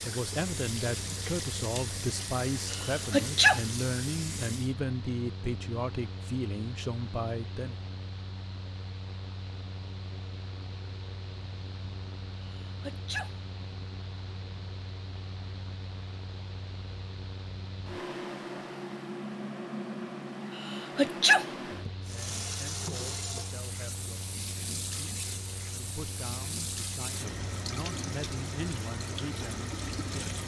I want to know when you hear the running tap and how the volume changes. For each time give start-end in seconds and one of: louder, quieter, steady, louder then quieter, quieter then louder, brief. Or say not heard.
0.0-4.8 steady
22.0-30.4 steady.